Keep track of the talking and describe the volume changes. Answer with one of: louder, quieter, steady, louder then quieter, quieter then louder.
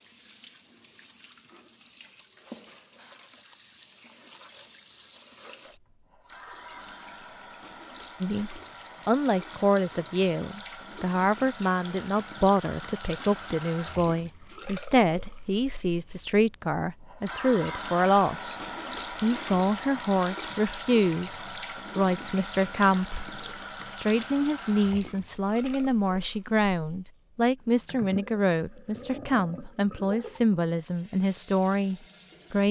steady.